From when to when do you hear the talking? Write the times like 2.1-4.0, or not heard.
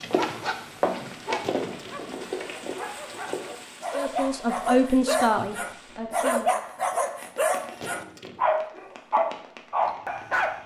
4.0-6.5.